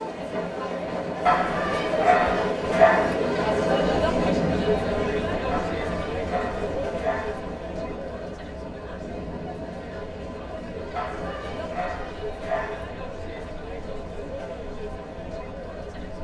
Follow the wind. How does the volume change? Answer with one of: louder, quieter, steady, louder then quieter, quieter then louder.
quieter.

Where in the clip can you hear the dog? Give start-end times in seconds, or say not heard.
1.2-3.1, 5.5-7.4, 10.9-12.8.